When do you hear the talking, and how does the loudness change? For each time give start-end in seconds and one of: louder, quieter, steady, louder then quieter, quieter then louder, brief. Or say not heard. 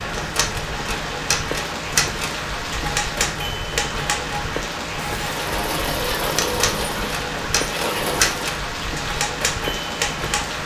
not heard.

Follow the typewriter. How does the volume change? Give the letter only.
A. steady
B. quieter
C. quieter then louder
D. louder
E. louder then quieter
C.